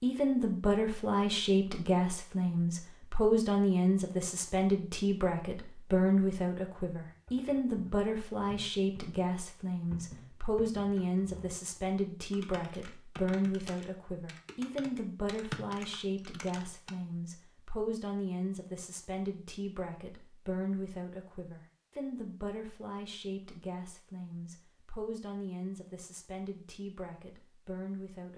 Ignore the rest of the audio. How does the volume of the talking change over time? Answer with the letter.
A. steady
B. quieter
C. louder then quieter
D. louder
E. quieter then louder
B.